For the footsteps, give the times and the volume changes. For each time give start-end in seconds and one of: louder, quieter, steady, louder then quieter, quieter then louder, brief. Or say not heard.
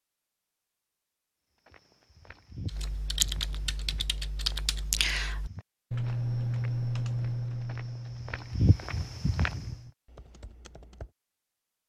1.6-9.8 quieter then louder.